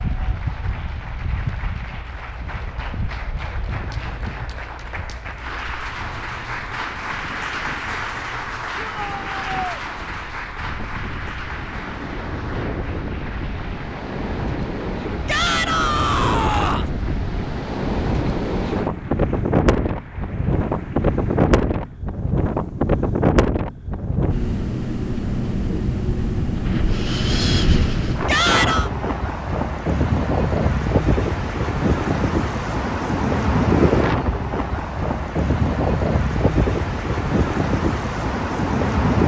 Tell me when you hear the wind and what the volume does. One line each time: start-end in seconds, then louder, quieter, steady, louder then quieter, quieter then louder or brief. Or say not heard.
0.0-39.2 louder.